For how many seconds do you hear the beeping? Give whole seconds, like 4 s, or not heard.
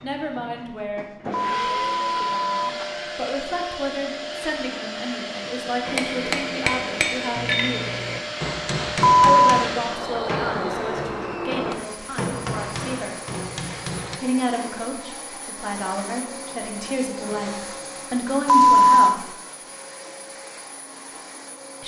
3 s.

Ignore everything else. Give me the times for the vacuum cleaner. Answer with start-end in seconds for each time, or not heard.
0.0-21.8.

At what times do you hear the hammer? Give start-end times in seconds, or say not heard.
5.8-14.2.